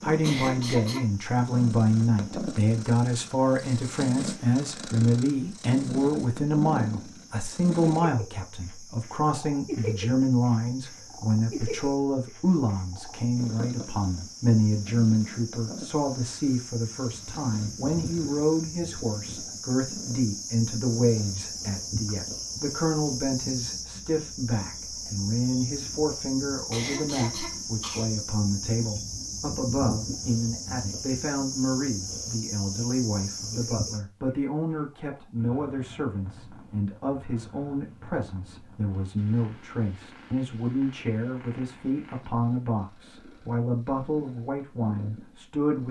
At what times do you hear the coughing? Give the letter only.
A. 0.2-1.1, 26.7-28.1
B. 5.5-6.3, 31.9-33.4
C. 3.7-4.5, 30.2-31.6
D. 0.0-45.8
A.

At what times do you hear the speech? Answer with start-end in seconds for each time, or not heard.
0.0-45.8.